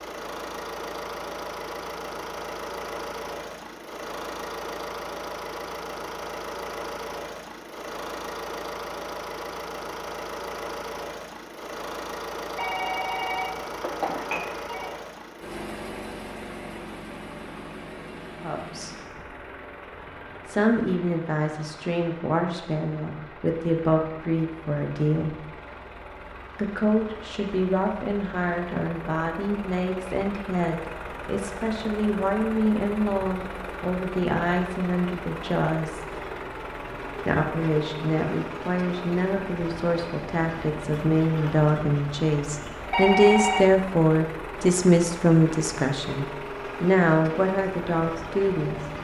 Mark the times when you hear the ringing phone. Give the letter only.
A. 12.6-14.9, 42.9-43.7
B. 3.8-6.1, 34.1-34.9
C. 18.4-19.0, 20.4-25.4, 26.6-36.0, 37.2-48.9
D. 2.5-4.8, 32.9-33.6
A.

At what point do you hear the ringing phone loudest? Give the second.
43 s.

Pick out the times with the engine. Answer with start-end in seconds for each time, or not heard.
0.0-48.9.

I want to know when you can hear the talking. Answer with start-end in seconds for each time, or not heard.
18.4-19.0, 20.4-25.4, 26.6-36.0, 37.2-48.9.